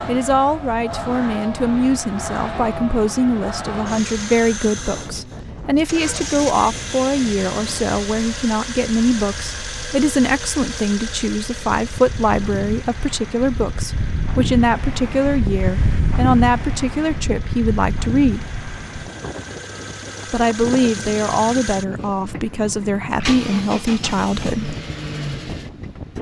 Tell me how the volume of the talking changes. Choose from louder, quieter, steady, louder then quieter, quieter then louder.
steady.